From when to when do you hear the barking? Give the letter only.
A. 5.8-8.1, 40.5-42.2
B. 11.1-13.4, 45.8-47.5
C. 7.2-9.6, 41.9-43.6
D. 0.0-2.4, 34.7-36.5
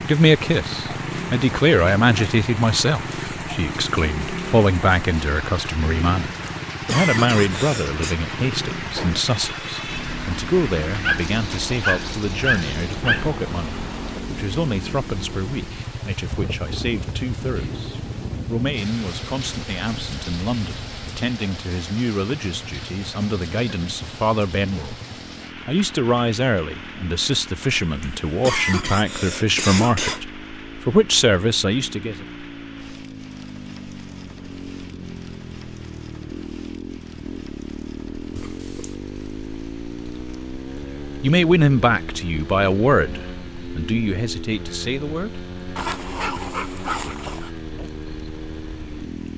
B.